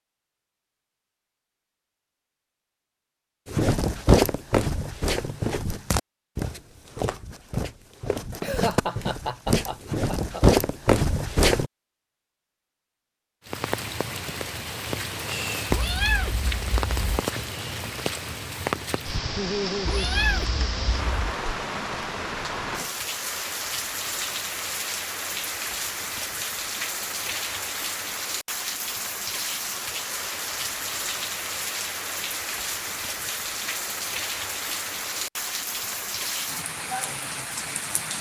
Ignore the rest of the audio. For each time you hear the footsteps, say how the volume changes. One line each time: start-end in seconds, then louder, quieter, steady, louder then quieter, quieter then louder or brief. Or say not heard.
3.5-11.7 quieter then louder.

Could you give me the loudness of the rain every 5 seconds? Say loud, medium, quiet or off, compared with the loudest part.
off, off, loud, loud, loud, loud, loud, loud.